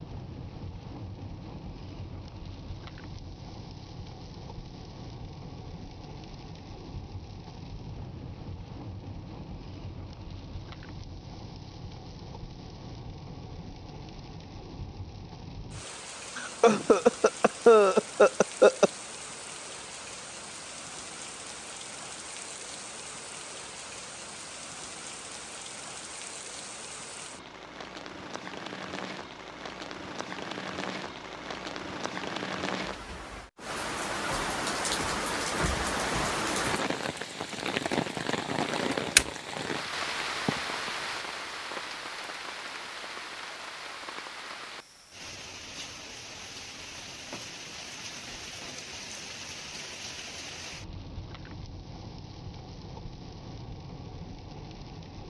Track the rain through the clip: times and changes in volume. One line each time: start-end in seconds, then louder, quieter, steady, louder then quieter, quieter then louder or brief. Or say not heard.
0.0-55.2 louder then quieter.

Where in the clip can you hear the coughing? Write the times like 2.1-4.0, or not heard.
16.4-18.9.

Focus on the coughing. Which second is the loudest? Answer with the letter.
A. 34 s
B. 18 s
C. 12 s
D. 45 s
B.